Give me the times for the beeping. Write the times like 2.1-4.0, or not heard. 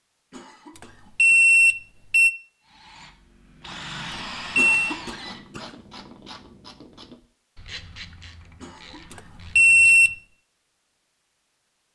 1.1-2.3, 4.5-5.0, 9.6-10.1.